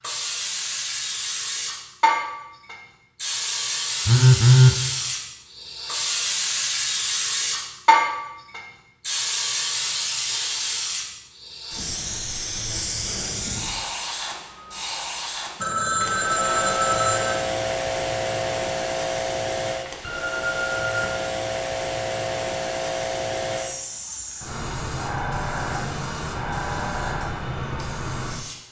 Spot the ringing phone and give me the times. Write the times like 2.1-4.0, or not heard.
4.0-4.8, 15.6-17.4, 20.0-21.1.